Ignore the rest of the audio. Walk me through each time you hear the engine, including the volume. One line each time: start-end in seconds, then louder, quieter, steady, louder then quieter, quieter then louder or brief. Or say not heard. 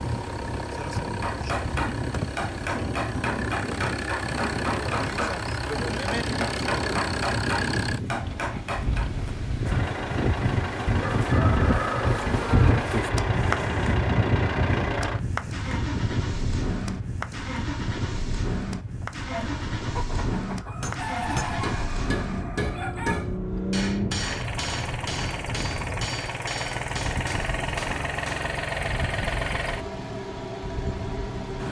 0.0-31.6 steady.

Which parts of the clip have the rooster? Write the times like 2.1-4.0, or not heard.
11.2-12.8, 19.3-23.2.